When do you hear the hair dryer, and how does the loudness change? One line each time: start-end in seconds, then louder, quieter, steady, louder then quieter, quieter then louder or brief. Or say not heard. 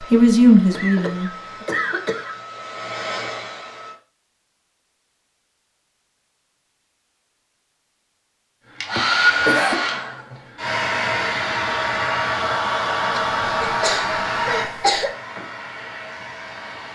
0.0-4.0 louder
8.7-16.9 quieter.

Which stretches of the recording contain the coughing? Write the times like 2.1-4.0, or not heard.
0.7-2.4, 8.9-9.8, 13.1-15.2.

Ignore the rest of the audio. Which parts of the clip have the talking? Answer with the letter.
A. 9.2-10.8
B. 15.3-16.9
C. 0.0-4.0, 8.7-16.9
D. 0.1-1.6
D.